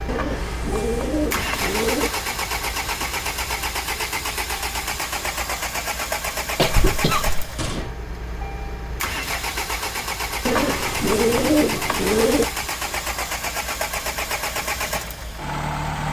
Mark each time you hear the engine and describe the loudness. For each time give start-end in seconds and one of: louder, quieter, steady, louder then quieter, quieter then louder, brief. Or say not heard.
0.0-16.0 steady.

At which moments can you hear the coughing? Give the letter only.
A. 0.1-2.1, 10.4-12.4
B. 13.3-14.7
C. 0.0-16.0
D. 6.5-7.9
D.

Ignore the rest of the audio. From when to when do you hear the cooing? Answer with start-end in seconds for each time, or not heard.
0.1-2.1, 10.4-12.4.